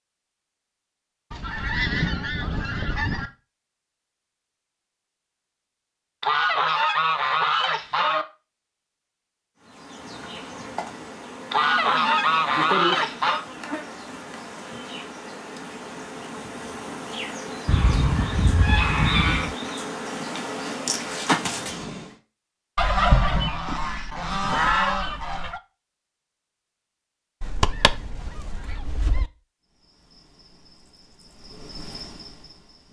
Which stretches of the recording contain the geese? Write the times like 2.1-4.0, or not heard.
1.3-3.3, 6.2-8.2, 11.5-13.4, 17.6-19.6, 22.8-25.6, 27.4-29.3.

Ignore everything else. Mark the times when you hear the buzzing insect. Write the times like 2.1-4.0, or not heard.
9.6-22.1, 29.6-32.8.